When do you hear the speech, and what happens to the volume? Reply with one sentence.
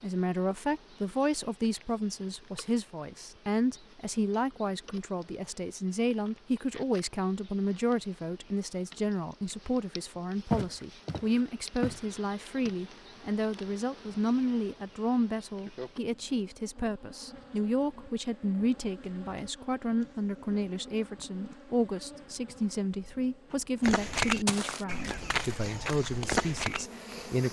The speech can be heard from 0.0 to 27.4 s, at a steady volume.